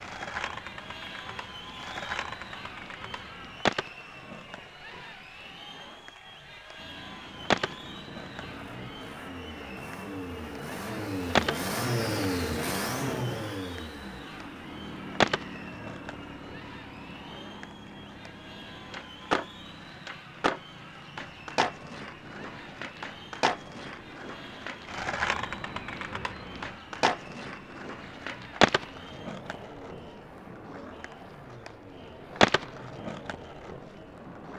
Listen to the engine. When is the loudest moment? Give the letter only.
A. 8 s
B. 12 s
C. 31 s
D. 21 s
B.